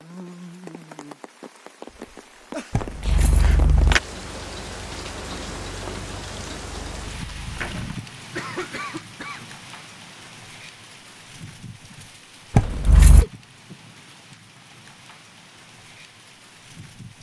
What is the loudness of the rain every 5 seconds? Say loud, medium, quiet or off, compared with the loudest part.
loud, loud, medium, medium.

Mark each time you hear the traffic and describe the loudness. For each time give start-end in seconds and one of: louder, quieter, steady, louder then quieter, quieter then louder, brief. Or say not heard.
not heard.